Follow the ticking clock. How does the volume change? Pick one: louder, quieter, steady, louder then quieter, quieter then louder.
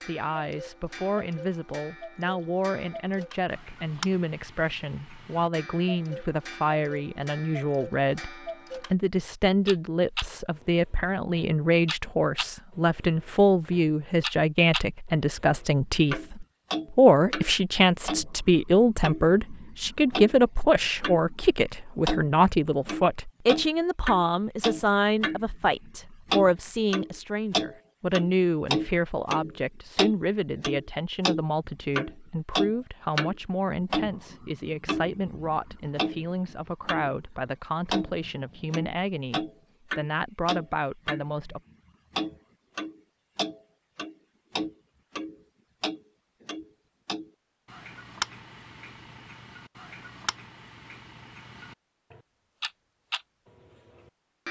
louder then quieter.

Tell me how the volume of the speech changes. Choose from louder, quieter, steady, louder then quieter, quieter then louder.
louder then quieter.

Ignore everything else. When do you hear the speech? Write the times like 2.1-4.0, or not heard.
0.1-41.6.